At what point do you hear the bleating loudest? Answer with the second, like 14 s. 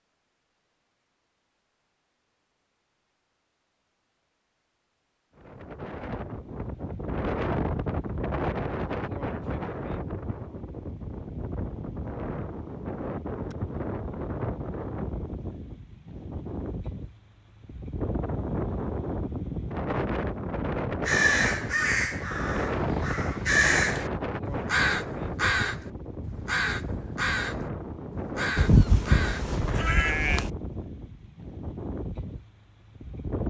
29 s.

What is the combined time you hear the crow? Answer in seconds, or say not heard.
9 s.